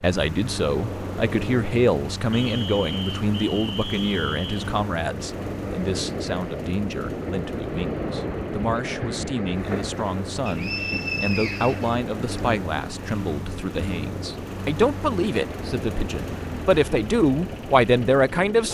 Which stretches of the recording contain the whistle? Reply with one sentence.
The whistle can be heard from 2.3 to 4.6 s and from 10.4 to 12.4 s.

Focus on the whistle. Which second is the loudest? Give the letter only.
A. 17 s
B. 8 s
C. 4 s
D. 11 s
D.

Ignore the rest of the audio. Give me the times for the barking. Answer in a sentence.
The barking can't be heard in this clip.